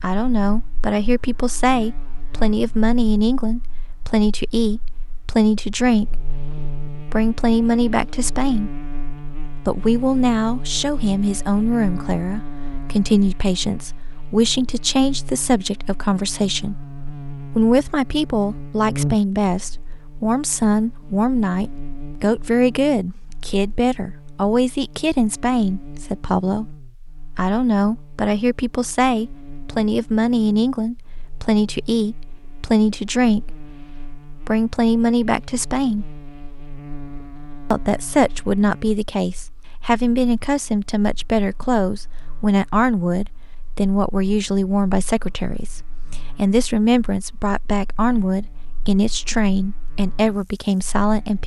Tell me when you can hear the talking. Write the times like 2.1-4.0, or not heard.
0.0-8.7, 9.7-16.8, 17.5-26.8, 27.4-36.0, 37.7-51.4.